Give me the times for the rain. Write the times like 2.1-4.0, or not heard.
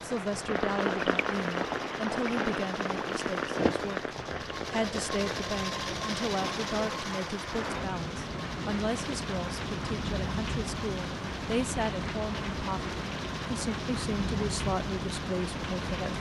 0.0-16.1.